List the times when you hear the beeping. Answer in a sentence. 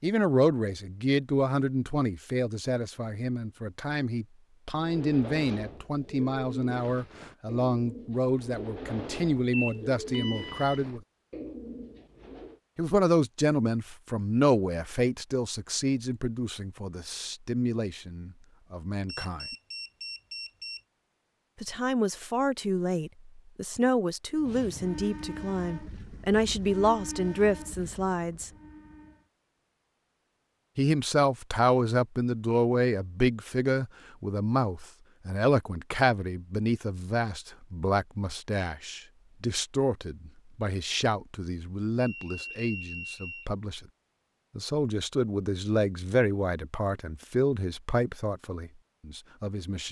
You can hear the beeping from 9.5 to 10.8 s, from 19.1 to 20.8 s and from 42.0 to 43.5 s.